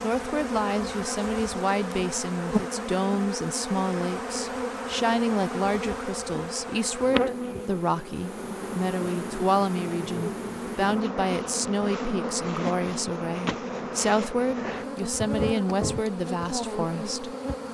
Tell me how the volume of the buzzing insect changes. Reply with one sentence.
The volume of the buzzing insect stays about the same.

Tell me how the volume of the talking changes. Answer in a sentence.
The volume of the talking stays about the same.